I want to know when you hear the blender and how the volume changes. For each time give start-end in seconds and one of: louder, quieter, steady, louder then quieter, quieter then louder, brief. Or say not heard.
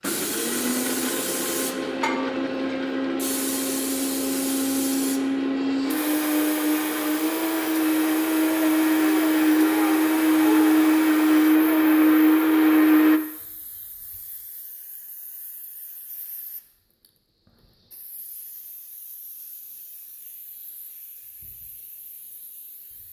0.0-13.2 louder.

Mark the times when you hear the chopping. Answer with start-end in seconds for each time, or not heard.
not heard.